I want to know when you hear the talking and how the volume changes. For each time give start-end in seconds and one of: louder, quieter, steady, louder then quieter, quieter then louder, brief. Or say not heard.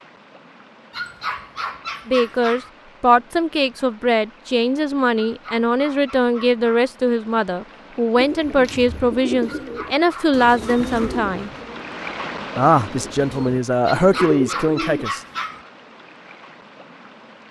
2.0-11.5 steady
12.6-15.2 brief.